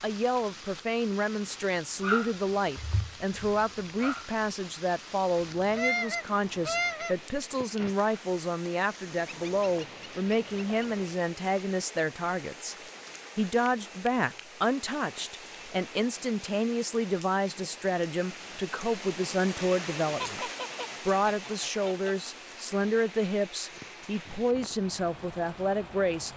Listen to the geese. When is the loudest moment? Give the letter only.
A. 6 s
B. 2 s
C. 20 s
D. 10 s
A.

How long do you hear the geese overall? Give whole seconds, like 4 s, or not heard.
6 s.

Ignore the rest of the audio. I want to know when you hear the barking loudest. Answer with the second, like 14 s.
2 s.